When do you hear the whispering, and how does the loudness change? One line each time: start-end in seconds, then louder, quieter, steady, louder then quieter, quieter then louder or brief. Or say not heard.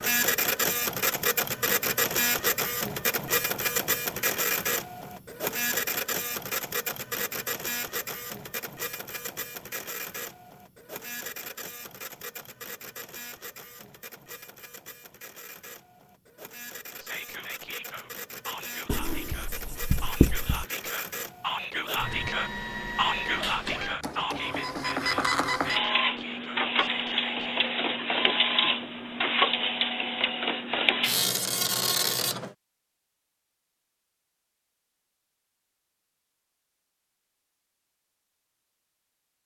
17.0-27.8 louder then quieter.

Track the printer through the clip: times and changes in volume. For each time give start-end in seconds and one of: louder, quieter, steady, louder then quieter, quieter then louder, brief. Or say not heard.
0.0-32.5 quieter then louder.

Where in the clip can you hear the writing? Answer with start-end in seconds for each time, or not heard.
18.9-20.6.